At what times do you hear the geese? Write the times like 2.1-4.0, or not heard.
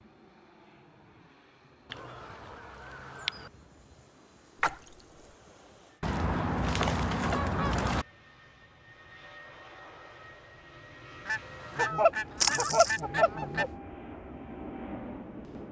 1.9-3.5, 6.0-8.1, 11.2-13.7.